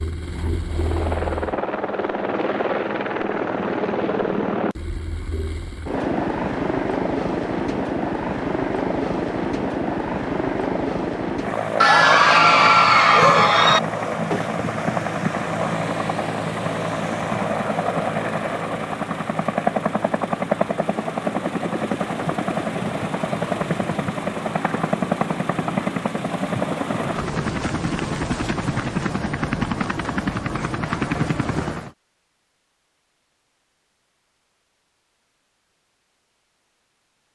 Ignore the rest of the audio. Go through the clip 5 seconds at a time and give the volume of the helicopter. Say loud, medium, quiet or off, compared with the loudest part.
loud, loud, loud, loud, loud, loud, loud, off.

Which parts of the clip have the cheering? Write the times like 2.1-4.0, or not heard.
11.8-13.8.